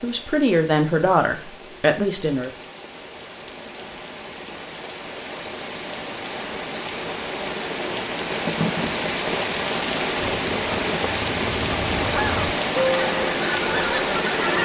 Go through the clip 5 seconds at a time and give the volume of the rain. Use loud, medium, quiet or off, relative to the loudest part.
quiet, loud, loud.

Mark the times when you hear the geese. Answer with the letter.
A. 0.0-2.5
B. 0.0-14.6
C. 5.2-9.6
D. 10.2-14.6
D.